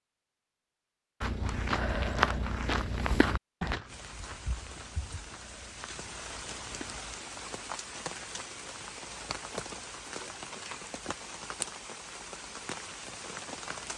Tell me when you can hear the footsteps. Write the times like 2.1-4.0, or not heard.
1.2-7.0.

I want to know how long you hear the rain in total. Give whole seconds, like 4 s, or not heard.
10 s.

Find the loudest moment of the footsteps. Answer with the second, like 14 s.
2 s.